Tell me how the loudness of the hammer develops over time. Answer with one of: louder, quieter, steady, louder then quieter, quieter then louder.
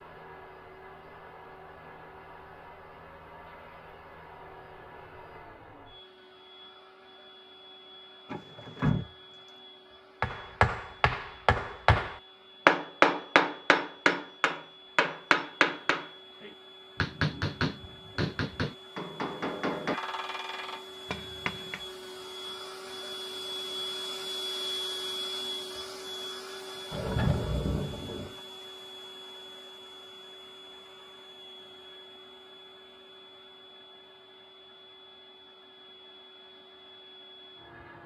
quieter.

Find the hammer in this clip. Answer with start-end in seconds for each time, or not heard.
10.2-21.9.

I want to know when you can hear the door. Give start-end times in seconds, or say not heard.
8.2-9.5, 26.9-28.4.